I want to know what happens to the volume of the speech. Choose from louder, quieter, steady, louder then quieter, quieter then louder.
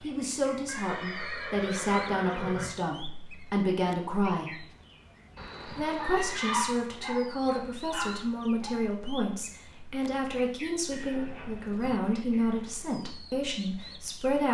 steady.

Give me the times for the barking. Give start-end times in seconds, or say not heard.
6.0-8.8.